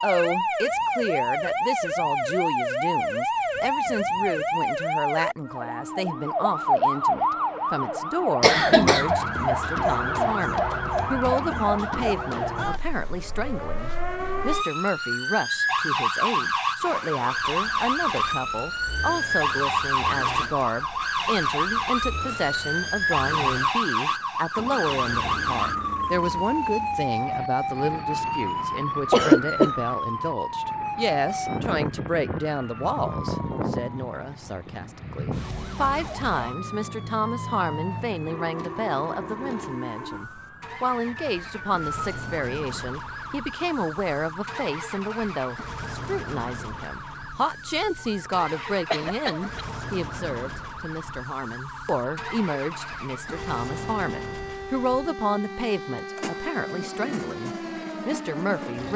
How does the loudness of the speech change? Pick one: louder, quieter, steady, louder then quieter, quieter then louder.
steady.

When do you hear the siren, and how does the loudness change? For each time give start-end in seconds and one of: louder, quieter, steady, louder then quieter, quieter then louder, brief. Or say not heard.
0.0-58.9 quieter.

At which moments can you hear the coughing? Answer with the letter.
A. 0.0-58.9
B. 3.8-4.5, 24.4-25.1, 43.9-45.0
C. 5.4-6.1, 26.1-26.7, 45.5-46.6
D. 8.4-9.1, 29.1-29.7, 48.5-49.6
D.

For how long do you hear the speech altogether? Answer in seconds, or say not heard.
59 s.